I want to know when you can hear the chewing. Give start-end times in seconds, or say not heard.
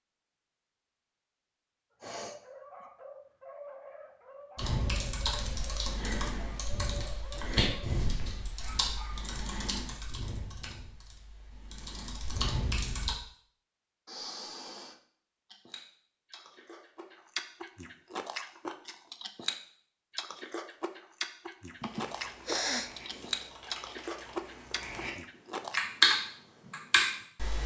15.5-25.9.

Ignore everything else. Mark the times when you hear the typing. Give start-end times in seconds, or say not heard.
4.5-13.2, 21.8-25.1, 25.8-27.6.